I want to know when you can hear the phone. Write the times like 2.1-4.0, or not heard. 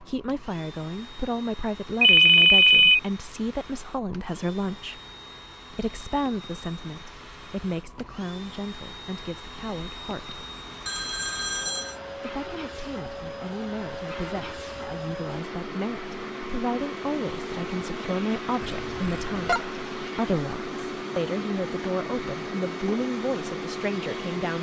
2.0-3.0, 10.8-12.0, 18.9-19.6.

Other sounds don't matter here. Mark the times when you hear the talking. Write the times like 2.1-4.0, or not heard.
0.0-5.0, 5.7-10.4, 12.2-24.5.